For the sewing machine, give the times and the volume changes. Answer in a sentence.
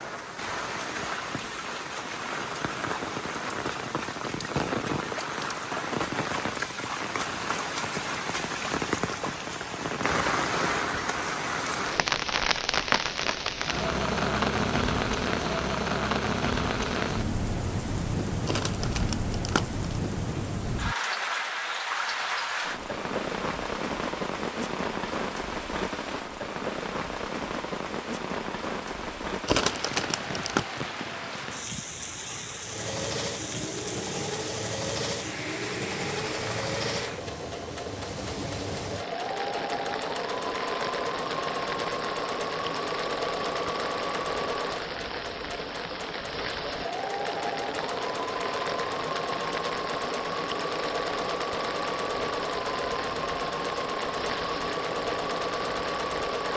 The sewing machine can be heard from 32.6 to 56.5 s, at a steady volume.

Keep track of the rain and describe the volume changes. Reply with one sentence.
The volume of the rain goes down.